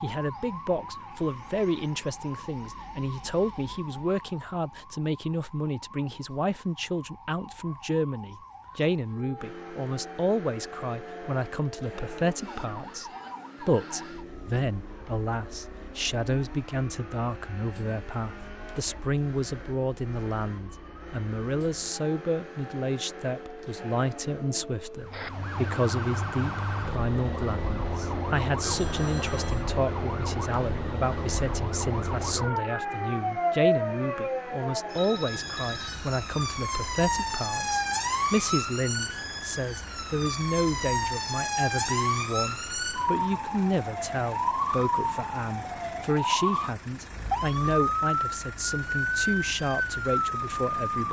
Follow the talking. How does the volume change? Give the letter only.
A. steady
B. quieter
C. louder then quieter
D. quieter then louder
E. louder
A.